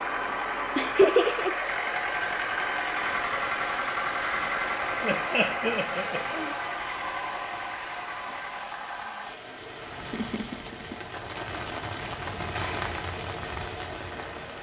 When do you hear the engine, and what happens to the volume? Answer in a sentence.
You can hear the engine from 0.0 to 14.5 s, getting quieter.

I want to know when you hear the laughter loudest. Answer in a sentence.
The loudest moment of the laughter is at 1 second.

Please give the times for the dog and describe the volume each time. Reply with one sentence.
The dog can't be heard in this clip.